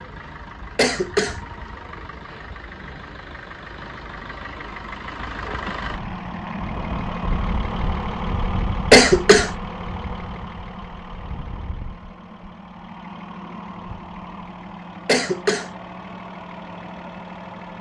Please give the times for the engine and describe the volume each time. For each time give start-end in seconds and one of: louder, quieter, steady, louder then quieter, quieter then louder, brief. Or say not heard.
0.0-17.7 louder then quieter.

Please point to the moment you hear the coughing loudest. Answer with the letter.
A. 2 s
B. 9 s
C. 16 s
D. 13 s
B.